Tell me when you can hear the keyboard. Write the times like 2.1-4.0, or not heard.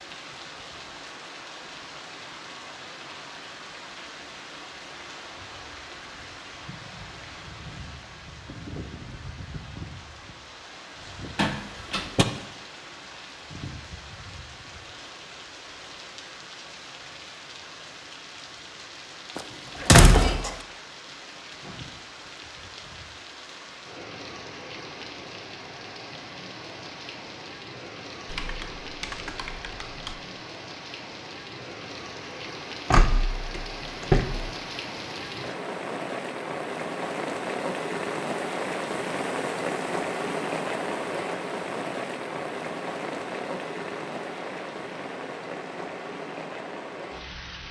28.2-30.2.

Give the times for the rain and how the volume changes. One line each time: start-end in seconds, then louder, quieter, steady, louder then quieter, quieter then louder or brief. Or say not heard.
0.0-47.6 louder.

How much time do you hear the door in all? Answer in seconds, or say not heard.
4 s.